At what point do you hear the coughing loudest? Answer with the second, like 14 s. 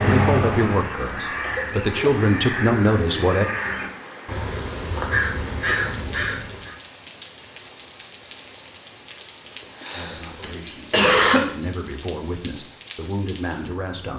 11 s.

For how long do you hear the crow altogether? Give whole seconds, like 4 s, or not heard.
7 s.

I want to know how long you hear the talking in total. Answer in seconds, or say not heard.
8 s.